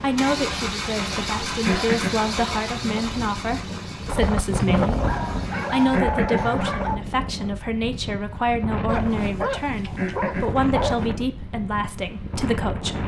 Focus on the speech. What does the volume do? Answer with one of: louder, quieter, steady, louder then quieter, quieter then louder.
steady.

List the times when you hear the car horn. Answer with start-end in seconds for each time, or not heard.
not heard.